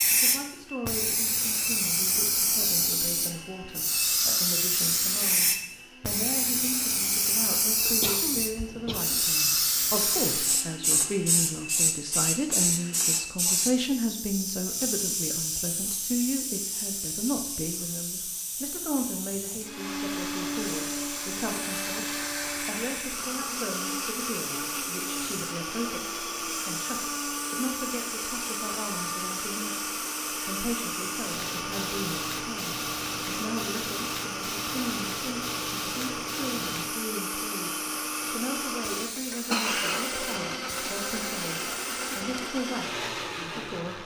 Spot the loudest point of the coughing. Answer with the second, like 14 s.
40 s.